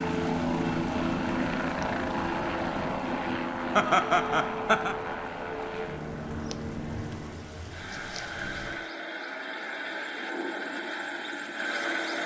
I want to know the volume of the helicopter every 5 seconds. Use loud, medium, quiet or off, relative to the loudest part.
loud, medium, loud.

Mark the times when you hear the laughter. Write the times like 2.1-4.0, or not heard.
3.8-5.0.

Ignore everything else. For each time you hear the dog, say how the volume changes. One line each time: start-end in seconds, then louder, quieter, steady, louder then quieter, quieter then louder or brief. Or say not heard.
not heard.